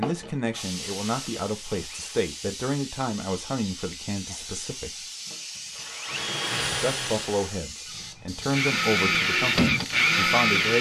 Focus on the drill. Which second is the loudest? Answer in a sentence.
The loudest moment of the drill is at 10 seconds.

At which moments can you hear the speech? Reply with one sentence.
The speech can be heard from 0.0 to 5.0 s and from 6.7 to 10.7 s.